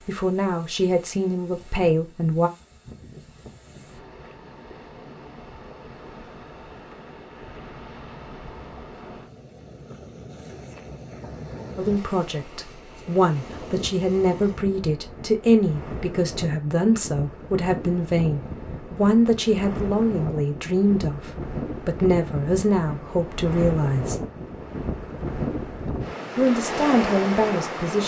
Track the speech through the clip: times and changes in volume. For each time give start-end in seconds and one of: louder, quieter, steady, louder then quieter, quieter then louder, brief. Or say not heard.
0.1-2.5 brief
11.8-24.2 steady
26.4-28.0 brief.